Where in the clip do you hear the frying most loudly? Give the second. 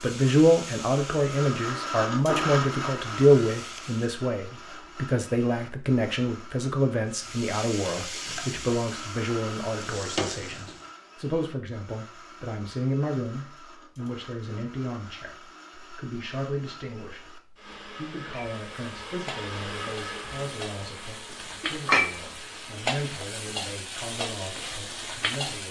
22 s.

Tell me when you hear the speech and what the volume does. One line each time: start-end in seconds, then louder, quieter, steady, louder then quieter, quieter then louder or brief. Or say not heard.
0.0-25.6 quieter.